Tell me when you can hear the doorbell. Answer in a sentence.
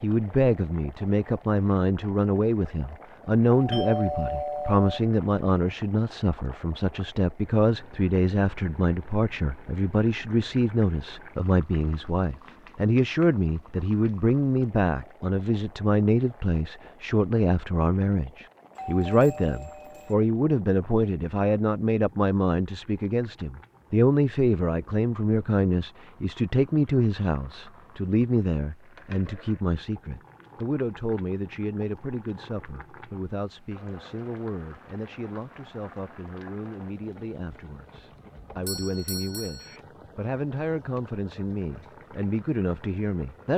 The doorbell can be heard from 3.5 to 5.0 s, from 18.8 to 20.1 s and from 38.6 to 39.8 s.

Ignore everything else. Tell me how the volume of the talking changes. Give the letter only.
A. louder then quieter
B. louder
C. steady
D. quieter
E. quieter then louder
D.